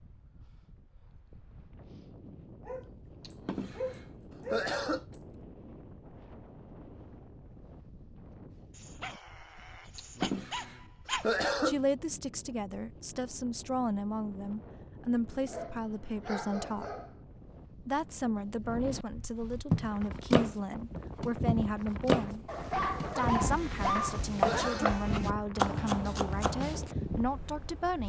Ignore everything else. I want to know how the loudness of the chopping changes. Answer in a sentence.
The loudness of the chopping goes down, then up.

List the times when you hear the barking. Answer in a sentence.
The barking can be heard from 2.6 to 4.7 s, from 8.8 to 11.2 s, from 15.4 to 17.1 s and from 22.4 to 24.8 s.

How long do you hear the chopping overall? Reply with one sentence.
You can hear the chopping for 7 seconds altogether.